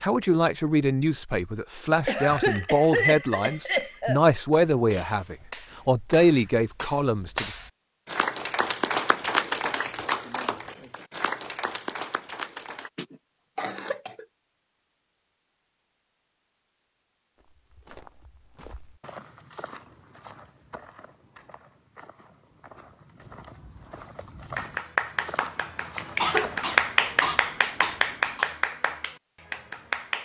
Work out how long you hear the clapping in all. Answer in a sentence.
The clapping can be heard for 14 seconds in total.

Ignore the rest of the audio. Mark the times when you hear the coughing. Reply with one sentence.
You can hear the coughing from 2.0 to 4.2 s, from 12.9 to 14.2 s and from 26.1 to 28.4 s.